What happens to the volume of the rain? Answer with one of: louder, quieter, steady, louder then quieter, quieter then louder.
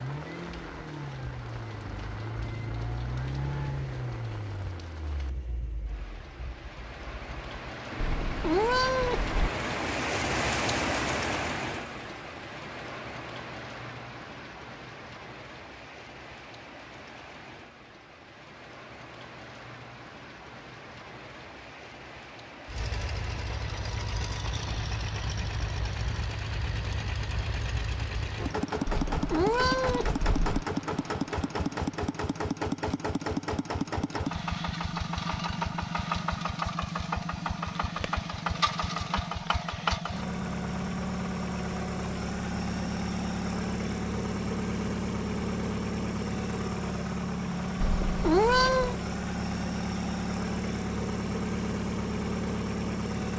louder then quieter.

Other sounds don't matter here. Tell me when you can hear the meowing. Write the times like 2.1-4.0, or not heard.
8.0-9.4, 28.9-30.6, 47.8-49.0.